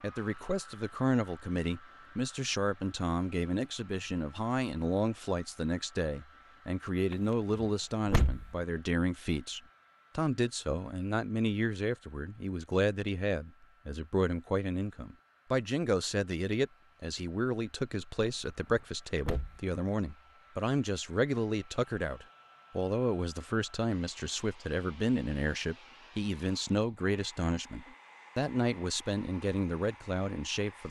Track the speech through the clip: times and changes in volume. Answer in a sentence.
You can hear the speech from 0.0 to 30.8 s, at a steady volume.